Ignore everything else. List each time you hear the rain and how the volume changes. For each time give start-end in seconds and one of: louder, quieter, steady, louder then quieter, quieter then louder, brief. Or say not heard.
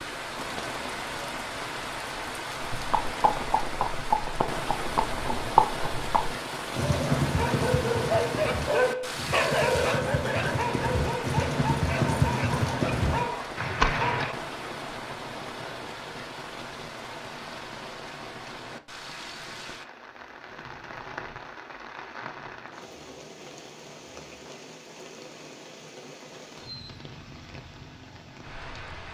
0.0-29.0 quieter.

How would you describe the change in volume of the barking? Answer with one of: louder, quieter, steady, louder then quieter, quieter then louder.
quieter.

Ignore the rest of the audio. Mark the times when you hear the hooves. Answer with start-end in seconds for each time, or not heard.
2.6-14.3.